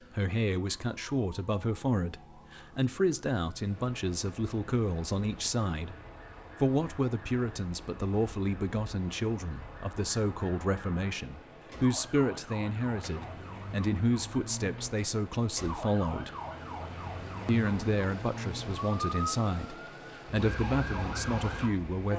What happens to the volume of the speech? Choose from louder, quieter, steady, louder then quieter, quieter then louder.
steady.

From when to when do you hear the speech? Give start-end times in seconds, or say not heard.
0.1-6.0, 6.6-16.3, 17.4-22.1.